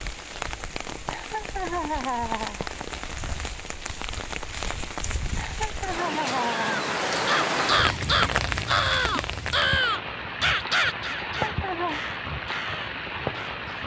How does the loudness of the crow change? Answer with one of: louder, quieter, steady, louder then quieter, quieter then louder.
quieter.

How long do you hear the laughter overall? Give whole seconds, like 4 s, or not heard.
4 s.